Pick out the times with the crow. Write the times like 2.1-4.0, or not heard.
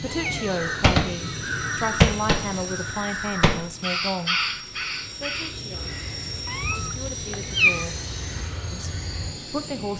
0.6-9.3.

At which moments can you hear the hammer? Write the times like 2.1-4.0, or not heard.
not heard.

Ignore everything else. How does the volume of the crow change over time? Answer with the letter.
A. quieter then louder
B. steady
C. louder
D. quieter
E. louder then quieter
D.